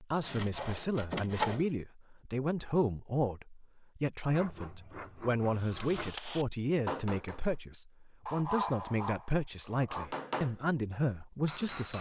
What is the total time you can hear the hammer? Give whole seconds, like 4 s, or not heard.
4 s.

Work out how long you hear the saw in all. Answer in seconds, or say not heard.
5 s.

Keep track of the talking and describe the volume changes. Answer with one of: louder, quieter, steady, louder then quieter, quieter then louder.
steady.